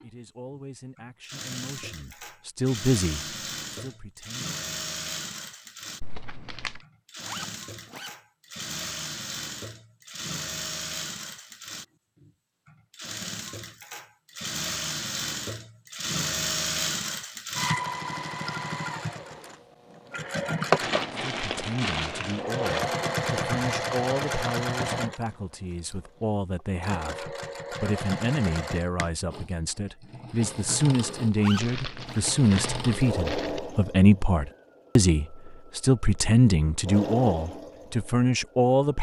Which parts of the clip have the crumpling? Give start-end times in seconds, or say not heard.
6.0-6.8, 20.8-22.8, 31.6-33.6.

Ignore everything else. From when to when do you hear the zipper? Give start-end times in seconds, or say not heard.
7.2-8.1, 31.4-32.2.